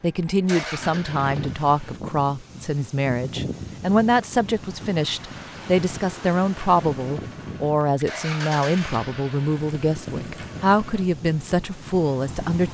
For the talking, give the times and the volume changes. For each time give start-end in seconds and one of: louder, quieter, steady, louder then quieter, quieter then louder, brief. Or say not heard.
0.0-12.6 steady.